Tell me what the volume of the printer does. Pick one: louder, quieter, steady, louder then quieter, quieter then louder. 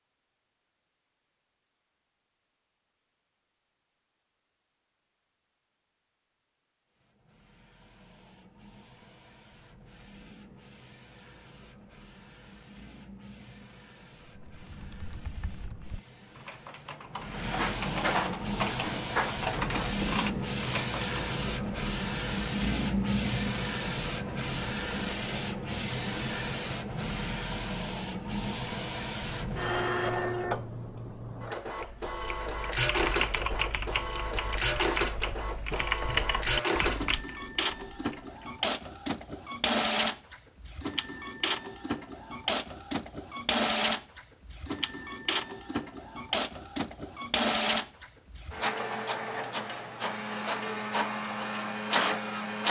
louder.